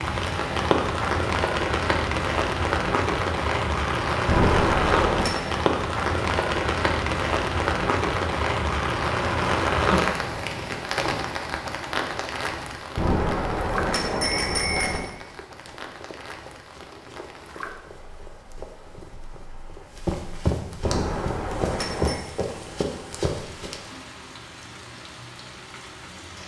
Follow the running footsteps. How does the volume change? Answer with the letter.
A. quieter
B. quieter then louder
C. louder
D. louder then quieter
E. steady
C.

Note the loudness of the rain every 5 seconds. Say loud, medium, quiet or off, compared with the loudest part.
loud, loud, medium, quiet, quiet, quiet.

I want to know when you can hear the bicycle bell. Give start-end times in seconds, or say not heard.
4.2-5.3, 12.9-15.0, 20.8-22.2.